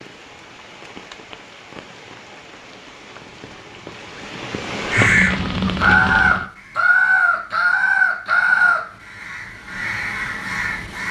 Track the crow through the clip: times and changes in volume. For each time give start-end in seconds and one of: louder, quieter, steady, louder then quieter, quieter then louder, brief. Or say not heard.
4.9-11.0 quieter.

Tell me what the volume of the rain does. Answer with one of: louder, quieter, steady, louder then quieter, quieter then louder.
louder.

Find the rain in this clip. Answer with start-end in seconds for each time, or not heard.
0.0-6.5.